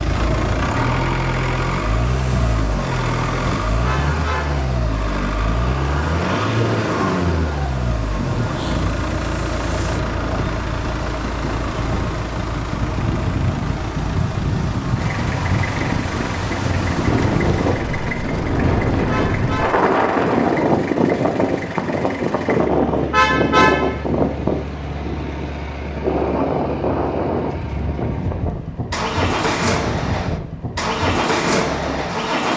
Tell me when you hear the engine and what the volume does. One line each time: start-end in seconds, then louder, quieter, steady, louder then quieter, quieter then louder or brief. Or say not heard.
0.0-32.5 quieter then louder.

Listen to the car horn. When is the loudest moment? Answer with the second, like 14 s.
24 s.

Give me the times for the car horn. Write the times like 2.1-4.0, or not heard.
3.9-4.6, 19.1-19.8, 23.1-24.0.